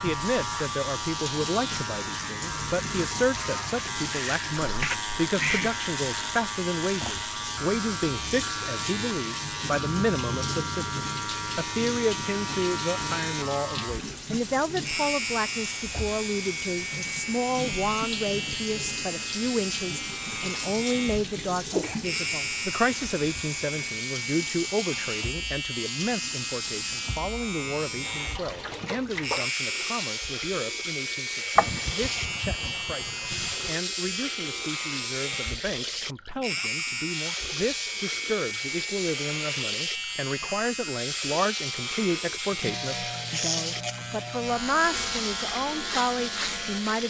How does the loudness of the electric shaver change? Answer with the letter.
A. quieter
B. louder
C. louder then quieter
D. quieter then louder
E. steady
E.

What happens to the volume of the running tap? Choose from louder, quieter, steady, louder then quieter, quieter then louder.
steady.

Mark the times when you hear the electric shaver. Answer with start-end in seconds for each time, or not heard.
0.0-47.0.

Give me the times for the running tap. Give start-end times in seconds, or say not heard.
0.0-47.0.